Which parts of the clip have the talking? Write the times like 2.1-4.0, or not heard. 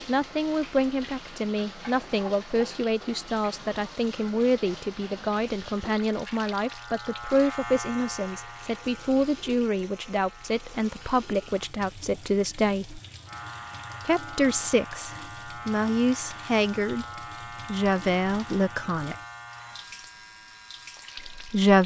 0.1-13.0, 14.1-17.1, 17.6-19.1, 21.1-21.8.